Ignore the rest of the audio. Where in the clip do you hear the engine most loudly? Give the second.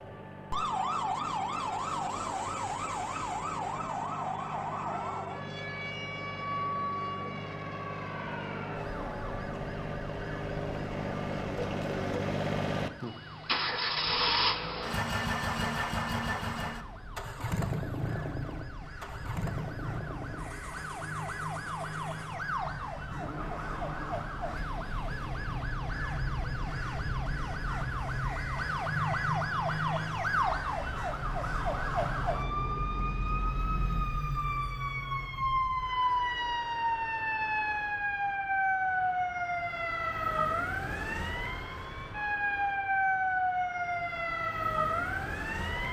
14 s.